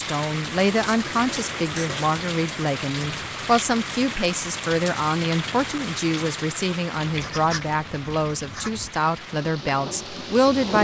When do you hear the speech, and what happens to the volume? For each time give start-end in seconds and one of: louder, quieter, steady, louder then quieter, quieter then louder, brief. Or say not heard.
0.0-10.7 steady.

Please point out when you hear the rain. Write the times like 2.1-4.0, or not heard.
0.0-10.7.